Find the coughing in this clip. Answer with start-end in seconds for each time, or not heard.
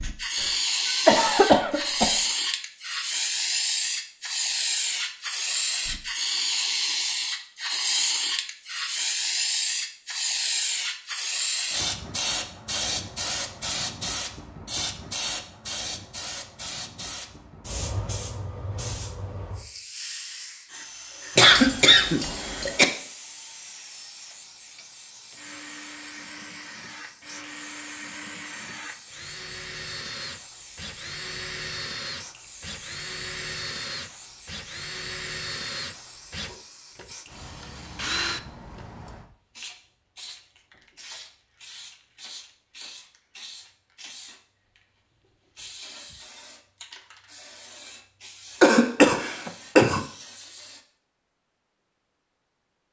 0.4-2.1, 21.4-22.9, 48.6-50.0.